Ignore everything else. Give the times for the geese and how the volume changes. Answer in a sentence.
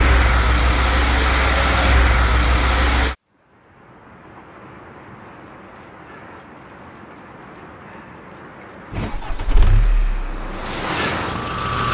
You can't hear the geese here.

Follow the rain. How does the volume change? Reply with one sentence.
The volume of the rain goes up.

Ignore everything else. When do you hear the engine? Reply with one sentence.
The engine can be heard from 0.0 to 3.1 s and from 8.9 to 11.8 s.